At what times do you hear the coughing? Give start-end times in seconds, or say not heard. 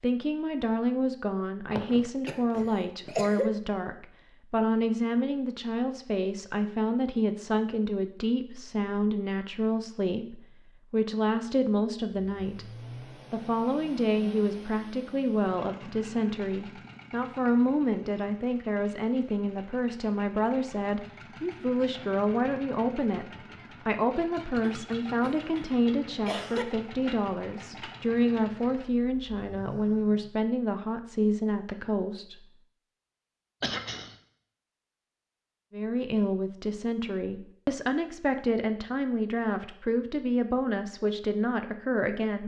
1.7-3.5, 24.6-26.6, 33.6-34.1.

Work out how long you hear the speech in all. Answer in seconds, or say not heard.
38 s.